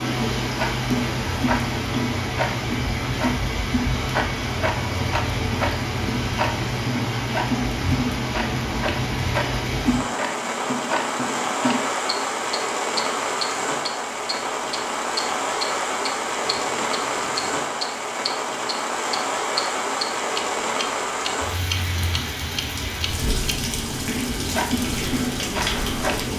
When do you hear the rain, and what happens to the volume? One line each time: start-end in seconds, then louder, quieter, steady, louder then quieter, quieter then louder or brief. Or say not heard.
0.0-26.3 steady.